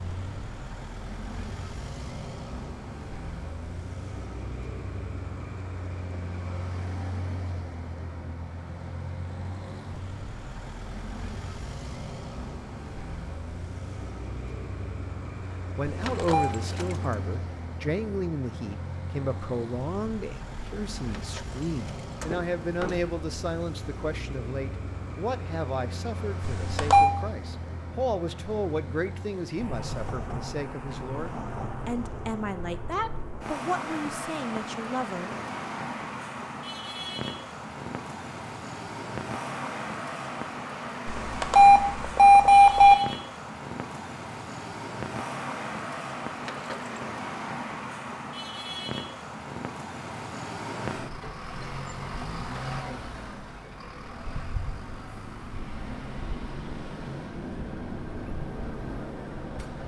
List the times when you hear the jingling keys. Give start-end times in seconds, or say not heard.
16.0-17.1, 21.1-23.0, 46.4-47.0.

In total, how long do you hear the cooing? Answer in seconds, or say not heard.
not heard.